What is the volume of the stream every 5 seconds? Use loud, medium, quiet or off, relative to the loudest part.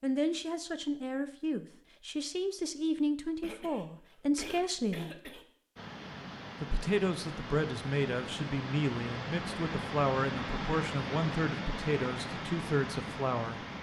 off, loud, loud.